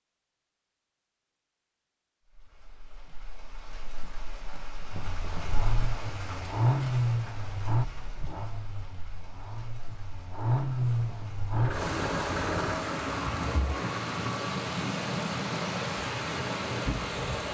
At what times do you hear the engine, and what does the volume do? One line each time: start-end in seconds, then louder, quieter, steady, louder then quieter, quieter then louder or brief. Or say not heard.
4.9-12.8 quieter then louder.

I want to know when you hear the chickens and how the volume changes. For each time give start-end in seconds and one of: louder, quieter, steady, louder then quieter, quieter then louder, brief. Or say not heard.
not heard.